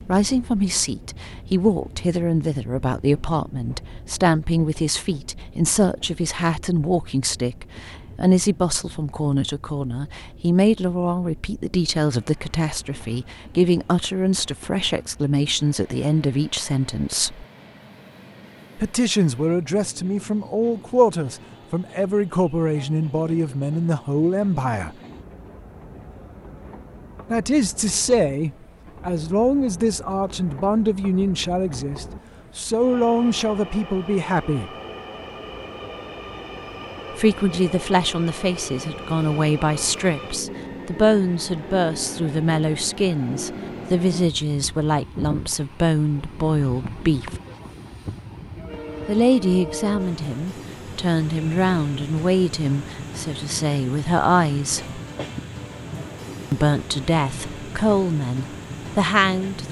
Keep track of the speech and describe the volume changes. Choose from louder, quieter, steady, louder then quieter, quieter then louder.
steady.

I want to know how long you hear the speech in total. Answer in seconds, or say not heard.
50 s.